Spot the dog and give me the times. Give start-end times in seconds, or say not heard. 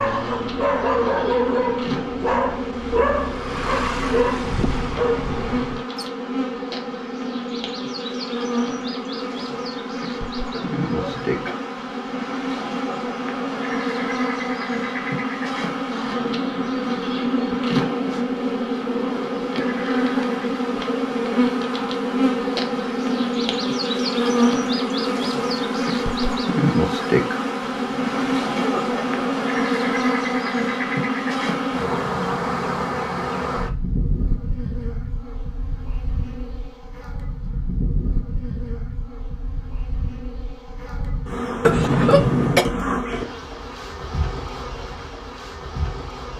0.0-6.0.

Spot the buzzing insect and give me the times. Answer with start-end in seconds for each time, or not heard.
0.0-46.3.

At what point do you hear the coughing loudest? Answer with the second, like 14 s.
42 s.